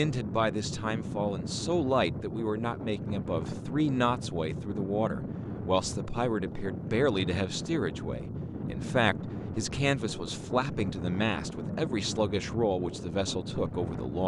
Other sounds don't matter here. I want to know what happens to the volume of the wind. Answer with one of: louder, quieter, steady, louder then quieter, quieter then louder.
steady.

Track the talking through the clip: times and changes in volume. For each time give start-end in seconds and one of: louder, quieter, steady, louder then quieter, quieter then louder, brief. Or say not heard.
0.0-14.2 steady.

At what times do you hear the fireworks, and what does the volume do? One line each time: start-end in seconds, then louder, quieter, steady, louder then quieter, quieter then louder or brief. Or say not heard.
not heard.